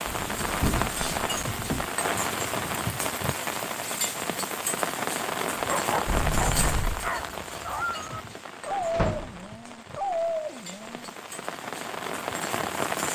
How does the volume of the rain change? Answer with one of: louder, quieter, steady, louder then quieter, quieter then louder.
quieter then louder.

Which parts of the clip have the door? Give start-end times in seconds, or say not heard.
0.1-1.9, 6.0-7.1, 8.9-9.4.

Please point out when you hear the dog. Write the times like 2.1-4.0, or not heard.
5.5-11.2.